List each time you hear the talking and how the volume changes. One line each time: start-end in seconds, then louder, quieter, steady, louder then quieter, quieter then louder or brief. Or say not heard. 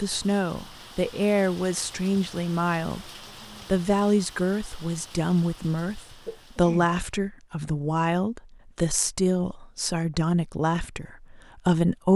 0.0-12.1 steady.